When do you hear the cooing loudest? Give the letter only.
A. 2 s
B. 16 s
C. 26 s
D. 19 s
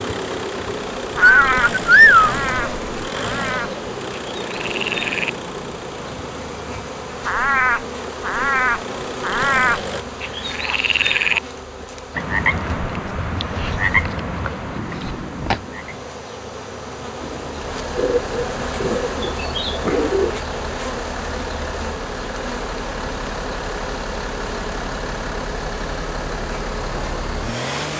A.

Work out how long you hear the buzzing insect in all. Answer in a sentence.
The buzzing insect can be heard for 28 seconds in total.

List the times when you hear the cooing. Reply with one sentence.
The cooing can be heard from 1.2 to 3.1 s and from 17.9 to 20.8 s.